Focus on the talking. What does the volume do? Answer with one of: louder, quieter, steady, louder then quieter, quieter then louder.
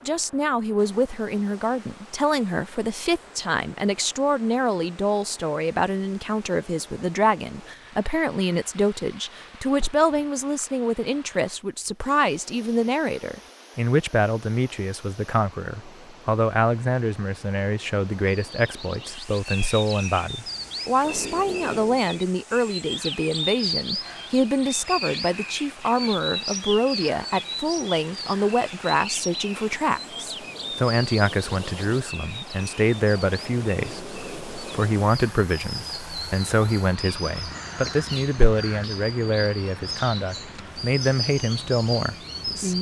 steady.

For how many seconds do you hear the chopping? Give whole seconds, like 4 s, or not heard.
not heard.